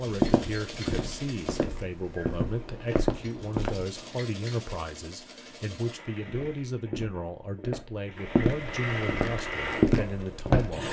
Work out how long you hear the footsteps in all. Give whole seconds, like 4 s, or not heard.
8 s.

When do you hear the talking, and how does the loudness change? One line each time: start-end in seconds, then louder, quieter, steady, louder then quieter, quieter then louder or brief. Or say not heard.
0.0-10.8 steady.